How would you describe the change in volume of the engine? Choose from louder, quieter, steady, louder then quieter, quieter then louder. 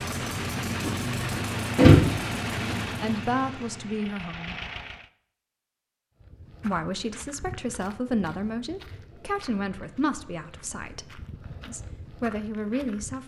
quieter.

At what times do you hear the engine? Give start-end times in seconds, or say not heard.
0.0-5.1.